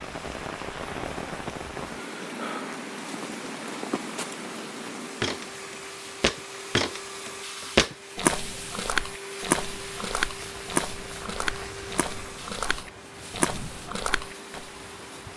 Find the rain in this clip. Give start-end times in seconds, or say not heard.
0.0-15.3.